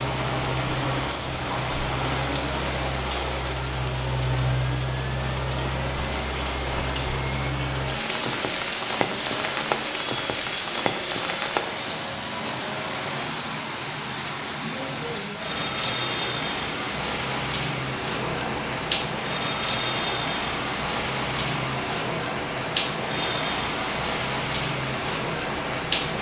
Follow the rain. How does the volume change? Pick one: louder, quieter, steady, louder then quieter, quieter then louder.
steady.